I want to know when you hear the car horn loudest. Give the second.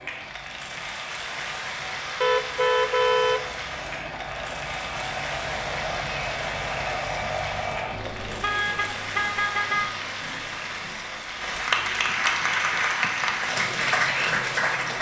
3 s.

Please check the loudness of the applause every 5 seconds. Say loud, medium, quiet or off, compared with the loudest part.
medium, medium, loud.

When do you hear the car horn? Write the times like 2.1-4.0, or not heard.
2.2-4.2, 8.0-9.9.